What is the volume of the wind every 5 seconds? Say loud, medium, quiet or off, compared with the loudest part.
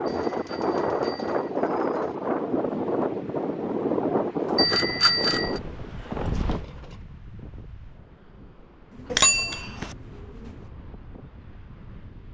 loud, medium, quiet.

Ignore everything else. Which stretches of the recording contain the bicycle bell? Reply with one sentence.
You can hear the bicycle bell from 0.1 to 1.5 s, from 4.5 to 5.6 s and from 9.1 to 9.9 s.